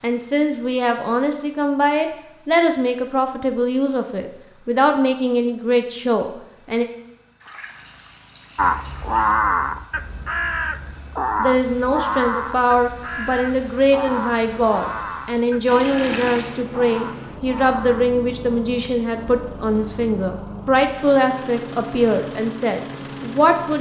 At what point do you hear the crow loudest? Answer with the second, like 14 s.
9 s.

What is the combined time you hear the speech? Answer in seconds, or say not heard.
19 s.